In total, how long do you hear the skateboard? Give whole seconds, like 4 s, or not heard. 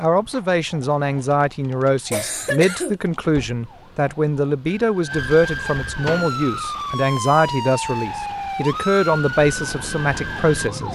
not heard.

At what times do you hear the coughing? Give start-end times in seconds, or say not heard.
2.1-3.0.